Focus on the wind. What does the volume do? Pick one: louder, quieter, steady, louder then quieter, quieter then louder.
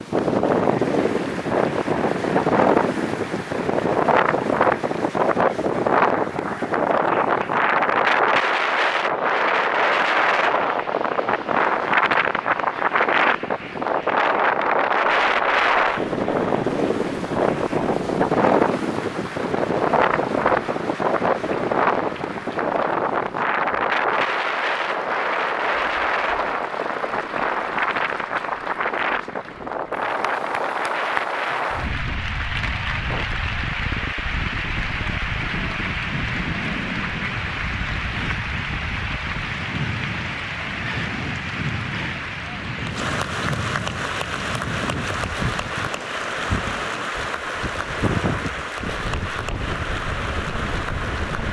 quieter.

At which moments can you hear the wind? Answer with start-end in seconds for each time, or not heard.
0.0-51.4.